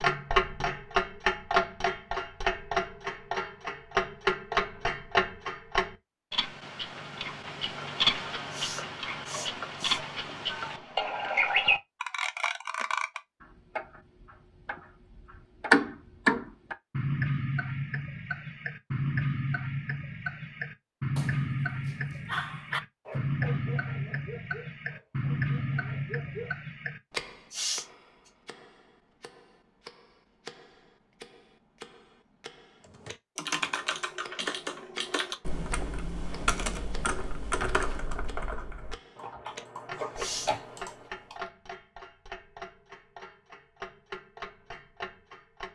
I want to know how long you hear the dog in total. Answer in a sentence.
The dog can be heard for 5 seconds in total.